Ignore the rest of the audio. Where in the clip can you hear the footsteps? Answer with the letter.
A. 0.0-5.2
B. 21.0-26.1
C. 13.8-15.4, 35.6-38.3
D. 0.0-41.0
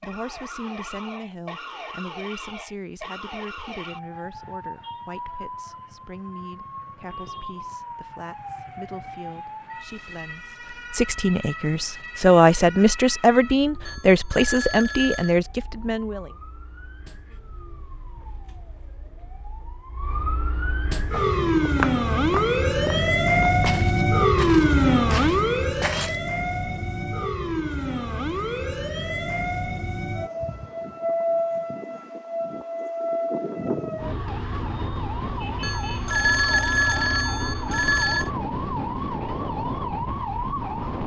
B.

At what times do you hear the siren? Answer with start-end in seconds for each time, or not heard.
0.0-41.0.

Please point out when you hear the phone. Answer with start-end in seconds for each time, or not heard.
13.8-15.4, 35.6-38.3.